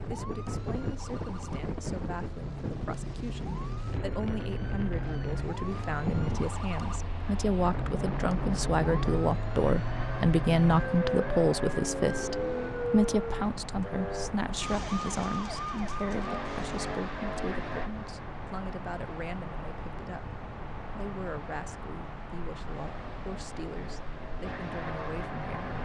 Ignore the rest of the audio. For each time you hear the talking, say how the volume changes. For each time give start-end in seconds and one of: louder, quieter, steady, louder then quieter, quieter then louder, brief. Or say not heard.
0.1-25.7 louder then quieter.